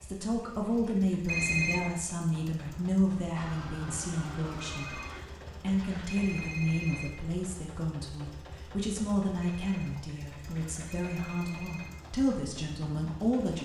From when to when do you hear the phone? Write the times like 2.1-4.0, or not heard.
1.2-1.9, 4.6-7.2, 9.4-11.9.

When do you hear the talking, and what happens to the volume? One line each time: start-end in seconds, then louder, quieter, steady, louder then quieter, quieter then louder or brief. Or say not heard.
0.0-13.6 steady.